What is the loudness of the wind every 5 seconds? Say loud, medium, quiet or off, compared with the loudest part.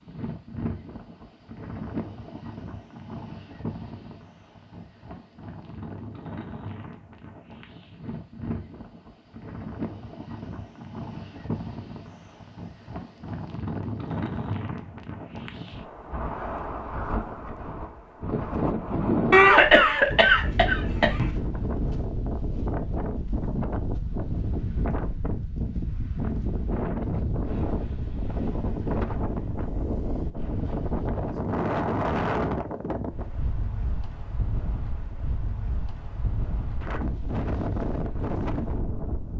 medium, medium, medium, loud, loud, loud, loud, loud.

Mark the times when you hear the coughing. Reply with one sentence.
You can hear the coughing from 19.3 to 21.3 s.